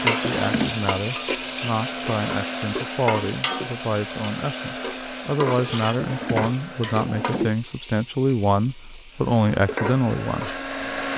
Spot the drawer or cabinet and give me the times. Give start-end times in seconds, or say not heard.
0.2-0.8, 6.0-7.6.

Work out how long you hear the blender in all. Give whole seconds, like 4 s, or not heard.
9 s.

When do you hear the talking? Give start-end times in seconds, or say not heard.
0.0-11.1.